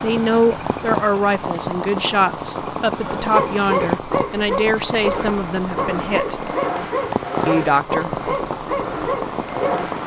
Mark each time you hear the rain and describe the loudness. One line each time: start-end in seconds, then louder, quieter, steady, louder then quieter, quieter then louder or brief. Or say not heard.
0.0-10.0 steady.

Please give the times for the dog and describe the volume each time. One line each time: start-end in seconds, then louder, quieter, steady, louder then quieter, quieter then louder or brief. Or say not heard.
3.0-9.8 steady.